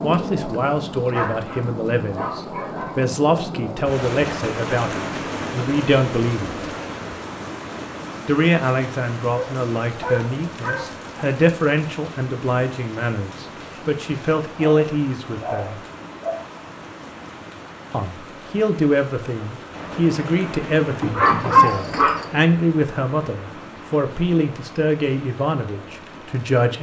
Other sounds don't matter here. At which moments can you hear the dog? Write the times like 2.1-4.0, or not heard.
1.1-3.0, 9.3-10.8, 14.6-16.4, 21.0-22.2.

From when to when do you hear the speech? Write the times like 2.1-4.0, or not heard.
0.0-6.7, 8.2-15.8, 17.9-26.7.